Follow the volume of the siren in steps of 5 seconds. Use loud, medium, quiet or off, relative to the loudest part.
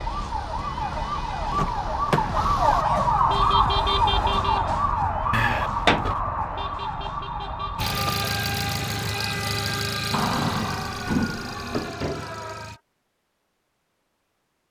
loud, medium, quiet.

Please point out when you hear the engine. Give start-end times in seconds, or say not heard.
0.0-2.9, 7.8-12.8.